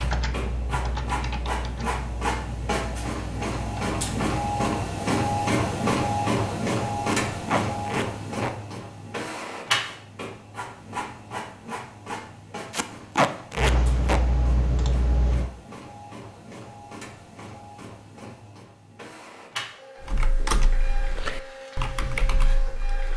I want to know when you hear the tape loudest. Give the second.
13 s.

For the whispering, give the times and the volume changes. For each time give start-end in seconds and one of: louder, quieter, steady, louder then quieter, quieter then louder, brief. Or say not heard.
not heard.